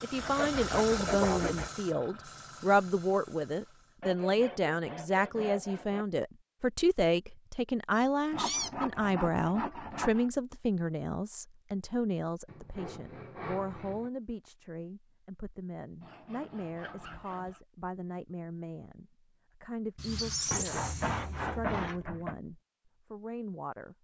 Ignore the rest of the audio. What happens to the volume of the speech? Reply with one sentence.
The loudness of the speech goes down.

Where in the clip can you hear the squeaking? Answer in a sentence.
You can hear the squeaking from 8.0 to 8.7 s and from 19.9 to 21.8 s.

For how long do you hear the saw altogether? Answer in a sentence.
You can hear the saw for 11 seconds altogether.